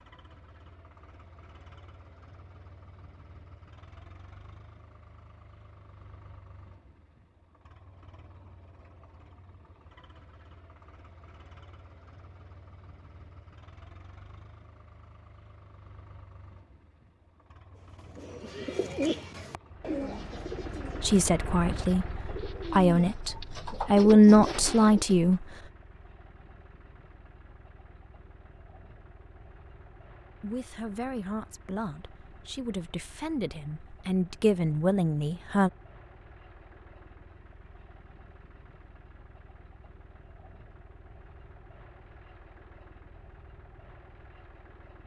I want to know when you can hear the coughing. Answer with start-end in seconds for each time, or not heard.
not heard.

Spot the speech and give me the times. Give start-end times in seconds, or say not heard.
21.0-25.4, 30.4-35.7.